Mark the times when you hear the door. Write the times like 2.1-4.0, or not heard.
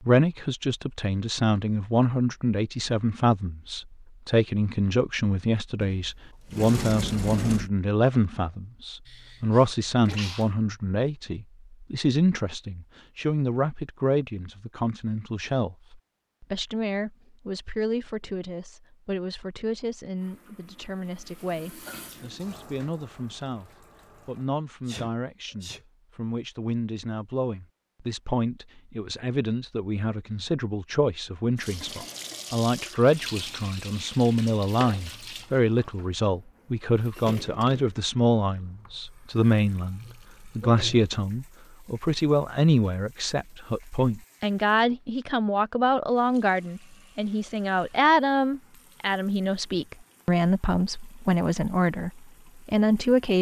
5.8-7.7, 37.1-38.0.